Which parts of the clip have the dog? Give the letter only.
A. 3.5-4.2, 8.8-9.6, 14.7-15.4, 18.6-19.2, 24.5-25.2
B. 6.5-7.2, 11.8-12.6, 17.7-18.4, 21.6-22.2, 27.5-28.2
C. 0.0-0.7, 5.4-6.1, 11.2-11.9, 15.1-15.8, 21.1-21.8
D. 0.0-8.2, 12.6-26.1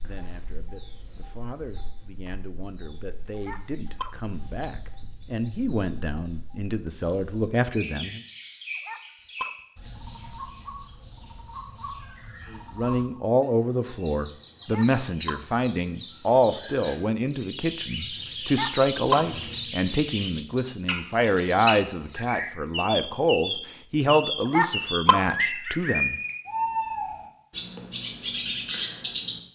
A.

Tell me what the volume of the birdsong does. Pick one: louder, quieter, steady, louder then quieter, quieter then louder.
louder.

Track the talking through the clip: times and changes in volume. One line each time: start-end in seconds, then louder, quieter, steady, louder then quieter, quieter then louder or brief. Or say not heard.
0.0-8.2 louder
12.6-26.1 steady.